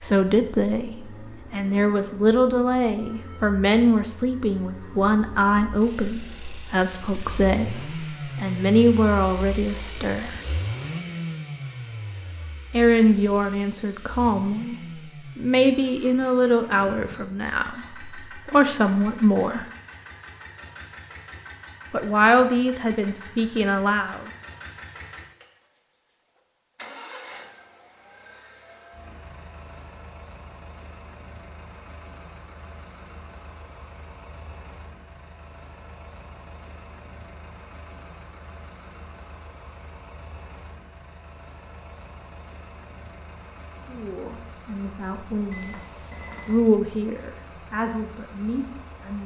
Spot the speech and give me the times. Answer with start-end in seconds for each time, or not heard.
0.0-10.4, 12.7-14.8, 15.3-19.6, 21.9-24.2, 43.9-45.8, 46.5-49.2.